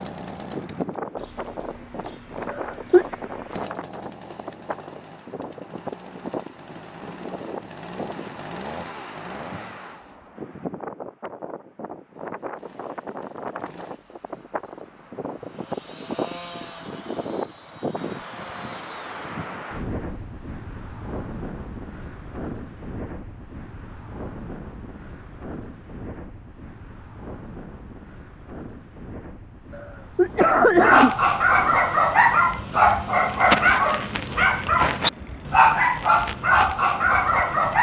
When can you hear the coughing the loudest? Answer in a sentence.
The loudest moment of the coughing is at 31 seconds.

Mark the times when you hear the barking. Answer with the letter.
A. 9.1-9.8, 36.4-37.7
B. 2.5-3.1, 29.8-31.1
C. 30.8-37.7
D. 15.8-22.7
C.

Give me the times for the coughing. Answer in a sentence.
The coughing can be heard from 2.5 to 3.1 s and from 29.8 to 31.1 s.